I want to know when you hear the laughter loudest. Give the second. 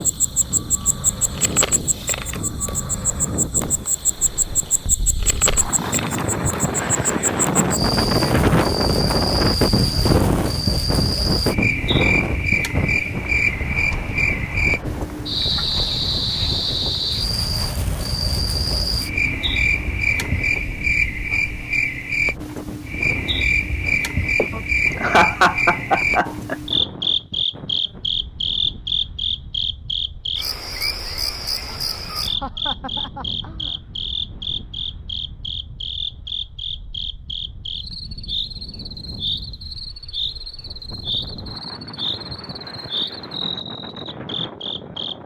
25 s.